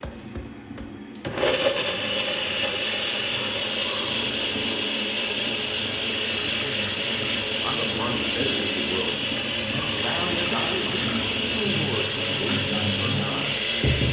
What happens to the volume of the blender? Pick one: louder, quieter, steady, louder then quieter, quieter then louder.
steady.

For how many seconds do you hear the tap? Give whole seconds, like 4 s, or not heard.
14 s.